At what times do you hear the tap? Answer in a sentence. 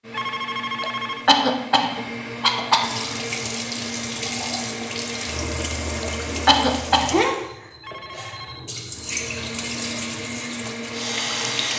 The tap can be heard from 2.8 to 11.7 s.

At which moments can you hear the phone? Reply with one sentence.
The phone can be heard from 0.1 to 1.2 s and from 7.8 to 8.7 s.